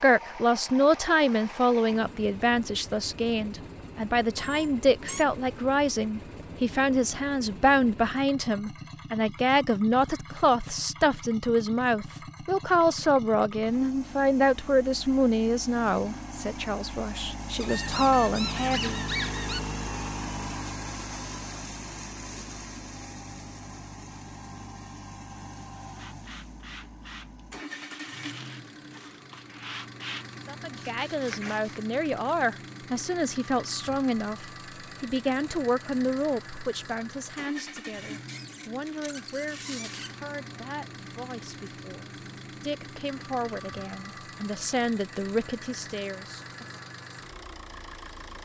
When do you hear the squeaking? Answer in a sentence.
The squeaking can be heard from 4.3 to 5.2 s, from 17.6 to 19.6 s and from 38.2 to 40.1 s.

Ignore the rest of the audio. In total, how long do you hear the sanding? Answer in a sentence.
You can hear the sanding for 6 seconds altogether.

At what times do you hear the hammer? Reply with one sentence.
You can't hear the hammer here.